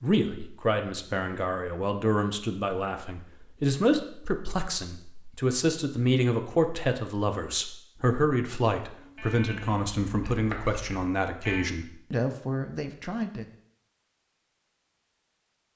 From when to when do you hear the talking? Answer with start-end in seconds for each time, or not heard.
0.0-13.4.